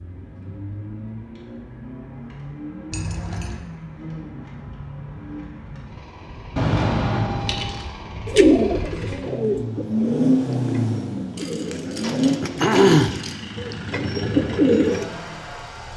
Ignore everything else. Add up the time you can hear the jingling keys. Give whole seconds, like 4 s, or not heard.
4 s.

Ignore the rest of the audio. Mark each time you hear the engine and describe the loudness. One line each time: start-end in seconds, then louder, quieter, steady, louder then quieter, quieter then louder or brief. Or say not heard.
0.0-15.9 louder then quieter.